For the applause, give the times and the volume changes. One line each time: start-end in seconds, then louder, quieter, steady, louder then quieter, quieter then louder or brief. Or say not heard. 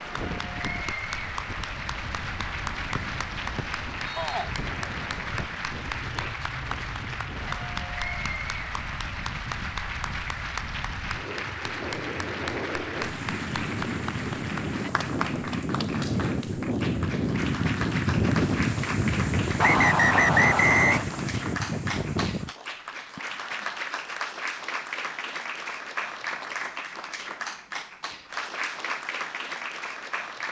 0.0-30.4 steady.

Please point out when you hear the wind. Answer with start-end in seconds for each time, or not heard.
0.0-22.5.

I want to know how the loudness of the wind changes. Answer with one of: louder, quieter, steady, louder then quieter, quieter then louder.
louder.